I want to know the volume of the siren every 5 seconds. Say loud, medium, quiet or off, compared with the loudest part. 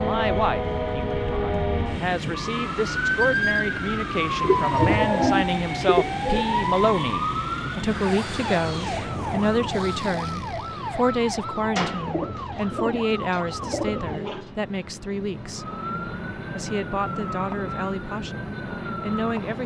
loud, loud, medium, medium.